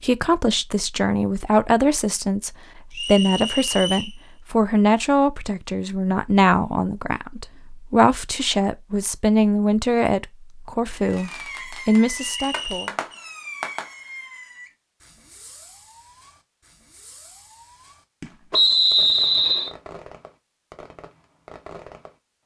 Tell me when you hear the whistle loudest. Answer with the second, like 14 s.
19 s.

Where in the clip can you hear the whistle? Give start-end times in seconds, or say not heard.
2.9-4.2, 12.2-12.9, 18.5-19.8.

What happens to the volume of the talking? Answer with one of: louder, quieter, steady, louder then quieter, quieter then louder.
steady.